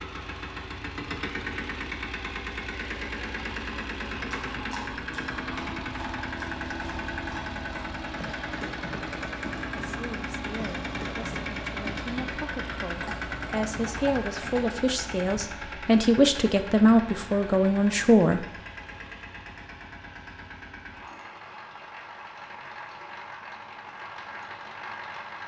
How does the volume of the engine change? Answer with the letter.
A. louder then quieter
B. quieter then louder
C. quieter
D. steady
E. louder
C.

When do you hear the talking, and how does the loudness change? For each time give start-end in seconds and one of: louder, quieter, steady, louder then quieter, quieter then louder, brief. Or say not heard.
9.8-18.4 louder.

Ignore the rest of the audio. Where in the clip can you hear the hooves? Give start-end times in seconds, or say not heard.
4.1-15.3.